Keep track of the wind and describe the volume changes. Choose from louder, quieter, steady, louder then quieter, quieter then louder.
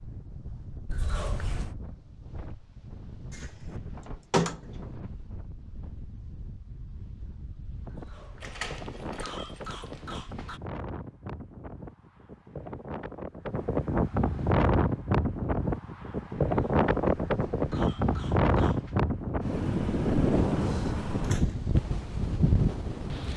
louder.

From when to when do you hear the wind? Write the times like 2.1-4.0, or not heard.
0.0-23.3.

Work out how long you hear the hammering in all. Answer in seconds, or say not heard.
not heard.